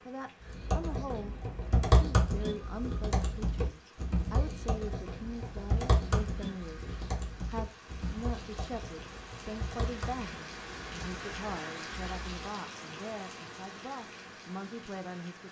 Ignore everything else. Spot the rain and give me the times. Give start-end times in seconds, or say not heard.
0.0-15.4.